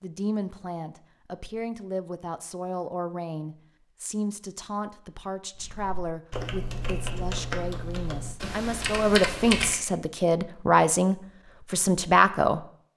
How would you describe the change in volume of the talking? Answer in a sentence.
The volume of the talking goes up.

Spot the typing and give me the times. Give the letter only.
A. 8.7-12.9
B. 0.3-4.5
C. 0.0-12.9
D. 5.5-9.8
D.